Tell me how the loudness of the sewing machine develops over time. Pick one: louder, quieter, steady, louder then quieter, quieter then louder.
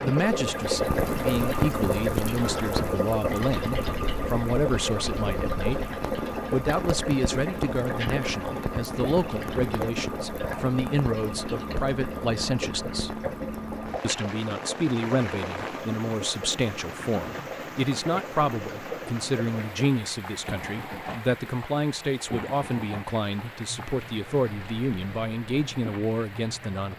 quieter.